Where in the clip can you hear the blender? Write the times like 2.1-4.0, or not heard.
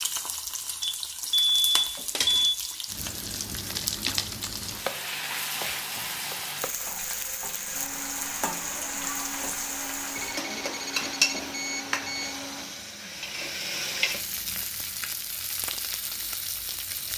7.7-12.7.